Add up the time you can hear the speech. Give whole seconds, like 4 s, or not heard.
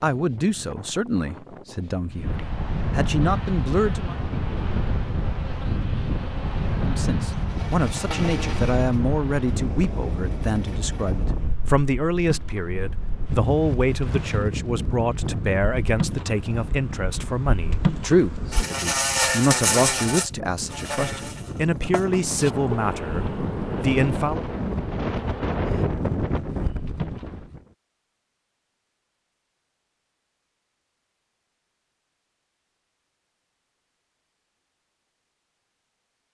22 s.